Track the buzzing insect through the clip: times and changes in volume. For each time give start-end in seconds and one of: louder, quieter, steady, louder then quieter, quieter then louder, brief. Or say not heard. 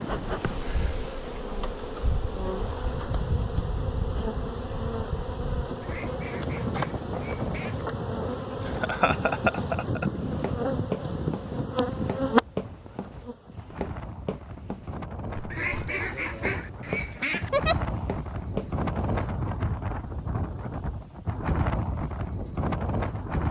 0.0-13.6 louder.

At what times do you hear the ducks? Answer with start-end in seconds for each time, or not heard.
5.8-7.8, 15.5-17.5.